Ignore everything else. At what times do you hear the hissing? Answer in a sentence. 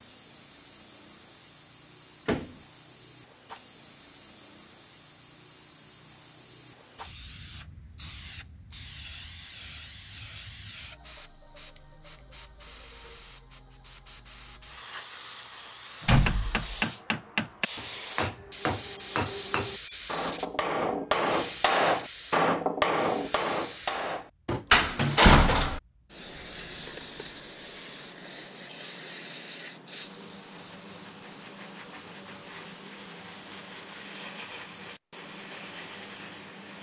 You can hear the hissing from 0.0 to 36.7 s.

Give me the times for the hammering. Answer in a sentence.
The hammering can be heard from 16.0 to 24.8 s.